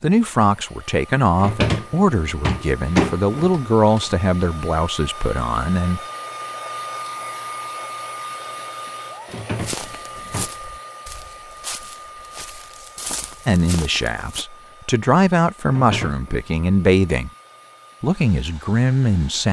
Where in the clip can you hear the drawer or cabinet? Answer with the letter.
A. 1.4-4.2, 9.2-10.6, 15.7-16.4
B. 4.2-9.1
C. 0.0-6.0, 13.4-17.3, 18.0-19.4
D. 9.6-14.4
A.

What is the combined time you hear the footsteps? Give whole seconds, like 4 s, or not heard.
5 s.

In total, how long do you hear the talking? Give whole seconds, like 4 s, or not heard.
11 s.